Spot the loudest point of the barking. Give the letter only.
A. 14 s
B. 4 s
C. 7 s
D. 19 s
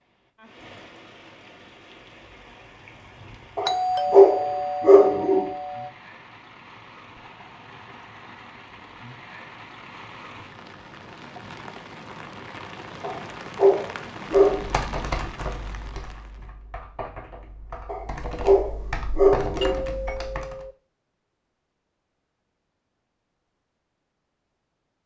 B.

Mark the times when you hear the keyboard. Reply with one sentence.
You can hear the keyboard from 14.6 to 20.6 s.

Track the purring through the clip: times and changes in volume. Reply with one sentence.
The purring can't be heard in this clip.